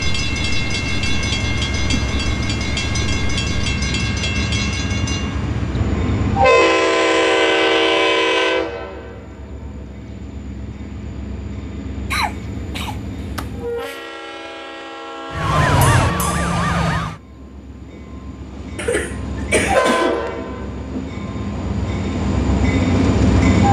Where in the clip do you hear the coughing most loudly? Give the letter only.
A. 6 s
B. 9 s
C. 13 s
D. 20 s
D.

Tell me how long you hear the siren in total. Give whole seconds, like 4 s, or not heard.
2 s.